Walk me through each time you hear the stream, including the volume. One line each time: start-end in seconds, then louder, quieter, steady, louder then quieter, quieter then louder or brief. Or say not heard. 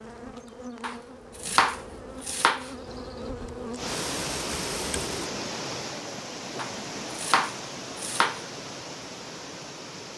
3.8-10.1 quieter.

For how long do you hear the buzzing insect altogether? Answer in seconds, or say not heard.
5 s.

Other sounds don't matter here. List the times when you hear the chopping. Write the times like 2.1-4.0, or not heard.
0.8-2.7, 6.5-8.4.